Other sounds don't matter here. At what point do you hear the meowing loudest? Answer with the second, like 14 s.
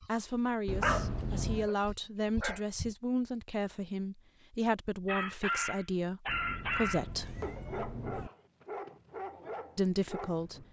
1 s.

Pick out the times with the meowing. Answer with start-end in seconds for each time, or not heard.
0.7-1.7, 6.2-8.3.